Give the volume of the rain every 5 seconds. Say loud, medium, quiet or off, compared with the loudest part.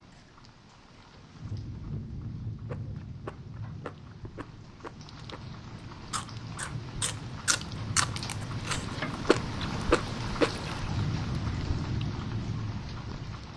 medium, loud, loud.